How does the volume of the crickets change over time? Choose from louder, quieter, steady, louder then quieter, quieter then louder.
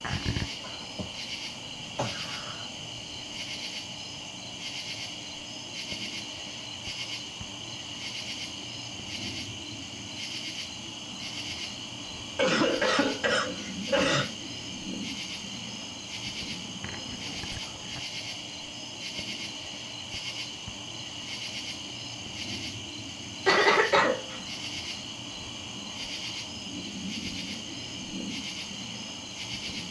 steady.